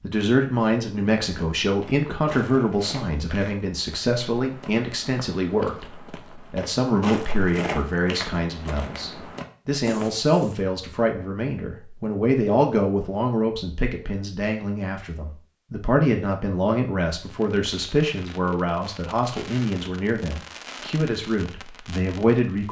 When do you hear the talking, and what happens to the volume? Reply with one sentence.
You can hear the talking from 0.0 to 22.6 s, at a steady volume.